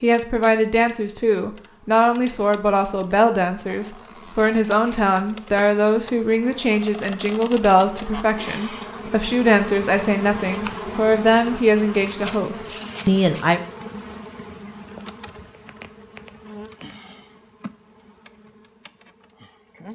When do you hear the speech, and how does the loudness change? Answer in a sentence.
You can hear the speech from 0.0 to 13.6 s, at a steady volume.